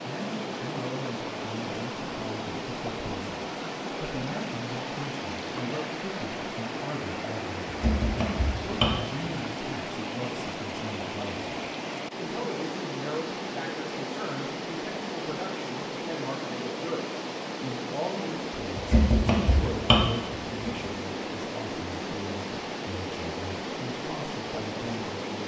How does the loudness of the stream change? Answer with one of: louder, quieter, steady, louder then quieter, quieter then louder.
steady.